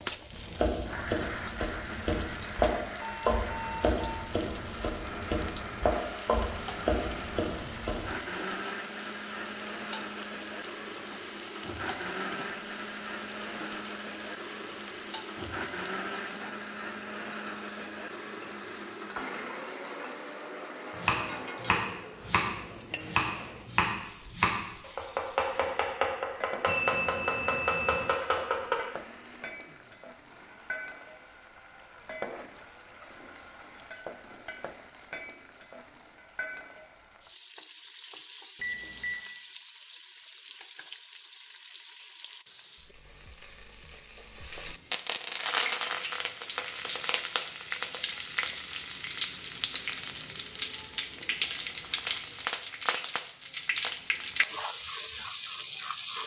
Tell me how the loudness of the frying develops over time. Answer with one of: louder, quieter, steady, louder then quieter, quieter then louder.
louder.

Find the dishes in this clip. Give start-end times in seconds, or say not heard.
not heard.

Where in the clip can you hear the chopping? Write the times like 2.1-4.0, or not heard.
0.3-8.2, 20.9-28.8.